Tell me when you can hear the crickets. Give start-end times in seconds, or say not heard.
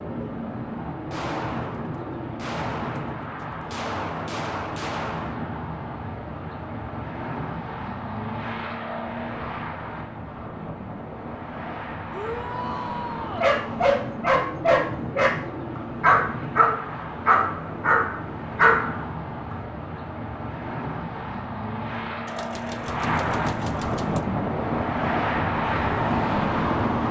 not heard.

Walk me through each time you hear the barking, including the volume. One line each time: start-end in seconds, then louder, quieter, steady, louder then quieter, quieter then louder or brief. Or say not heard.
13.4-19.6 steady.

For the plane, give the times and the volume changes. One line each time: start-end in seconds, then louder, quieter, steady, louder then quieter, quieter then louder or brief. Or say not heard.
0.0-27.0 louder.